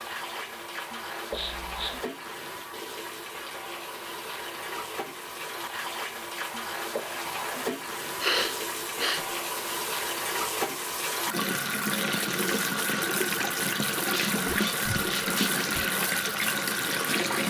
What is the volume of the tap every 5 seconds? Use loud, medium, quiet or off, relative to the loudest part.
medium, medium, loud, loud.